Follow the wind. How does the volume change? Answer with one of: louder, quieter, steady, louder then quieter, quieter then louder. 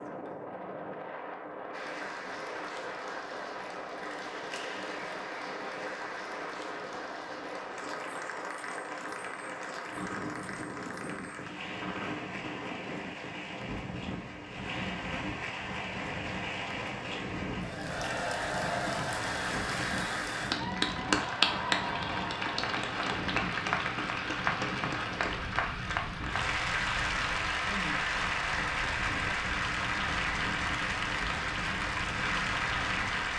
steady.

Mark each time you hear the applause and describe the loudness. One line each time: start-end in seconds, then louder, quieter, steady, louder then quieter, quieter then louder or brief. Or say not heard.
1.7-33.3 louder.